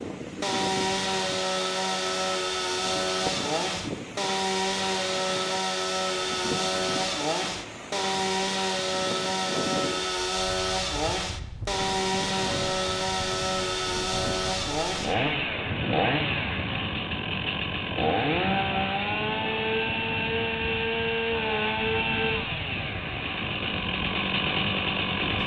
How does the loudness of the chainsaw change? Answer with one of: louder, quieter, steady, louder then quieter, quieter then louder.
steady.